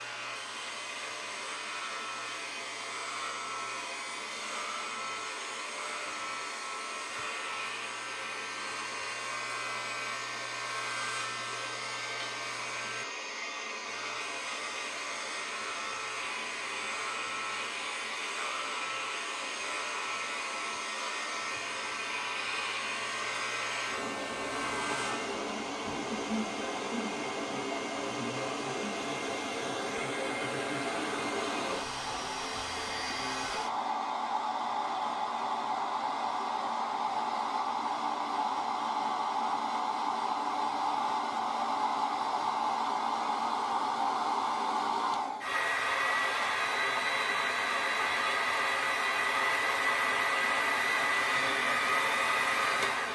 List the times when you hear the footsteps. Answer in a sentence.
The footsteps can't be heard in this clip.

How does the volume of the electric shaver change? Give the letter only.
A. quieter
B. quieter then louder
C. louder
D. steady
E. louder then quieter
D.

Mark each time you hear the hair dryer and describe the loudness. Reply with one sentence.
You can hear the hair dryer from 0.0 to 53.1 s, getting louder.